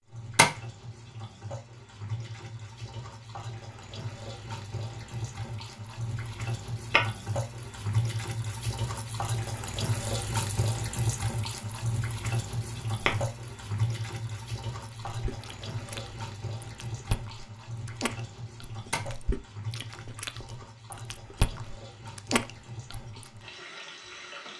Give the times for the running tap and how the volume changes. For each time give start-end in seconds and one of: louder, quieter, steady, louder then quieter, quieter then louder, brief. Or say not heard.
0.0-24.5 louder then quieter.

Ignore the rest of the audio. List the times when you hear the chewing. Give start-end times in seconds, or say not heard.
15.1-23.2.